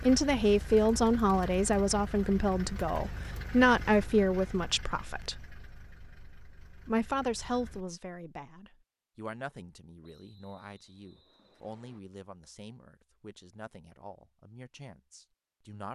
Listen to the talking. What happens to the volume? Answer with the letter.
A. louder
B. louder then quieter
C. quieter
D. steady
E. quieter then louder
C.